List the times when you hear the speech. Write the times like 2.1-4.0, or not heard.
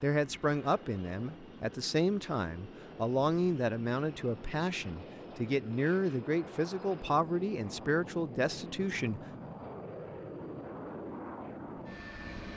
0.0-9.2.